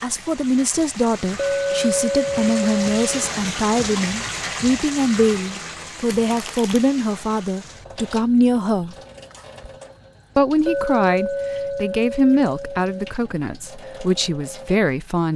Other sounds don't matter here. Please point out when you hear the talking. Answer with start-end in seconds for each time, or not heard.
0.0-8.9, 10.3-15.3.